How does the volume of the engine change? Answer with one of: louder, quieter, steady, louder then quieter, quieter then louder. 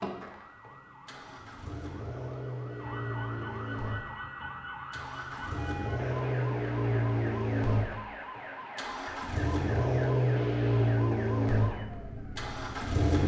louder.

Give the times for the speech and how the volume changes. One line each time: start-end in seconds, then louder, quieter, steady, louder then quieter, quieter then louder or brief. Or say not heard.
not heard.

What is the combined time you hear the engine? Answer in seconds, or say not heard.
13 s.